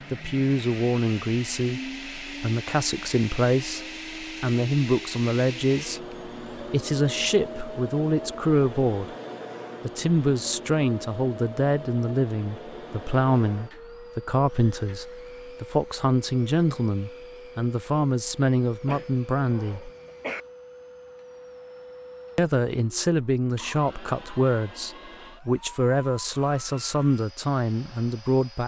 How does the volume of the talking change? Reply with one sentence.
The volume of the talking stays about the same.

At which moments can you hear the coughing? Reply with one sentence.
The coughing can be heard from 18.9 to 20.4 s.